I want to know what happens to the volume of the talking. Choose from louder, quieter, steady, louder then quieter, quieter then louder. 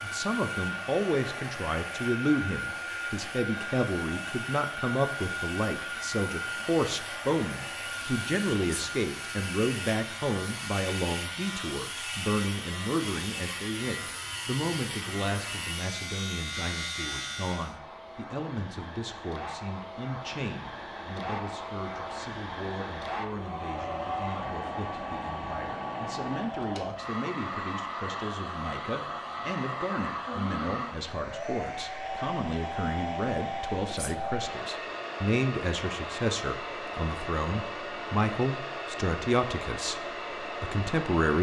quieter then louder.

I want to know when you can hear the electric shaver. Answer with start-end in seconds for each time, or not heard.
0.0-17.8.